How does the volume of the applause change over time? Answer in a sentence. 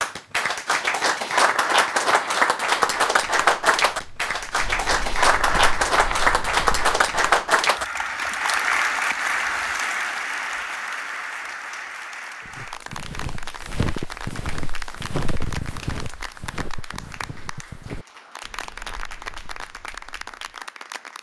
The volume of the applause goes down.